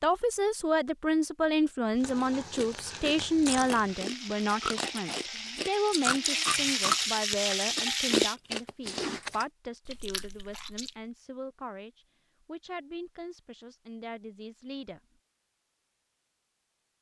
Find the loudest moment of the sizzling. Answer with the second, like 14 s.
7 s.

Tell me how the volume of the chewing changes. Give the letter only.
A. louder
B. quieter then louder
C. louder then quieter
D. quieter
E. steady
C.